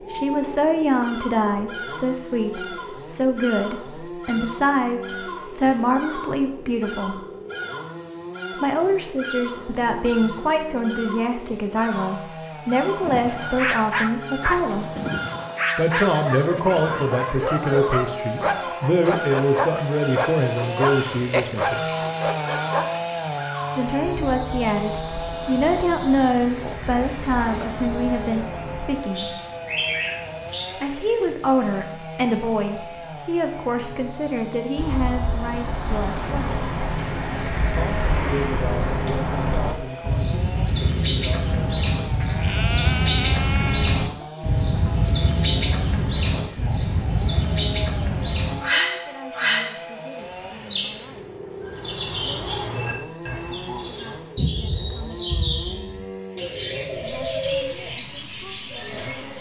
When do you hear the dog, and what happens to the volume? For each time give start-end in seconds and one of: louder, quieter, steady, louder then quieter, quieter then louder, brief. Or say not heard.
13.0-23.1 steady.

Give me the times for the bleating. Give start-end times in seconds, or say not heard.
42.2-44.1.